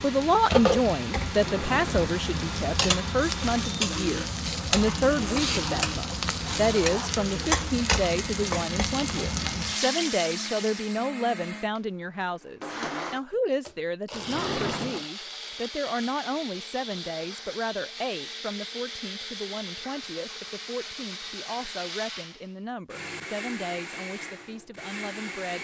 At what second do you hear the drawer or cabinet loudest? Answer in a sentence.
The volume of the drawer or cabinet peaks at 15 seconds.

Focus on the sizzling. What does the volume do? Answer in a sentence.
The volume of the sizzling stays about the same.